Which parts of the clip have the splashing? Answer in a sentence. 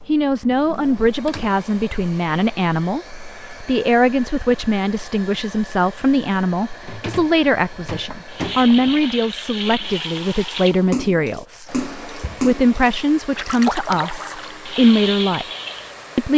You can hear the splashing from 8.3 to 15.9 s.